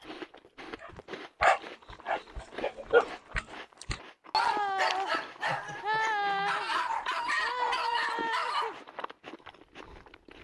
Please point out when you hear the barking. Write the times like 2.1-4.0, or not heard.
0.8-8.8.